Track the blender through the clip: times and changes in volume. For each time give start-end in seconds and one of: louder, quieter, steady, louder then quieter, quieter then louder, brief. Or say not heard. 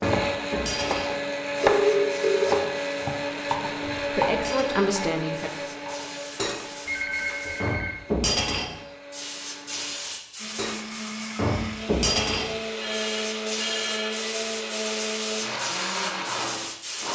0.0-17.1 quieter then louder.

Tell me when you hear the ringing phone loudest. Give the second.
2 s.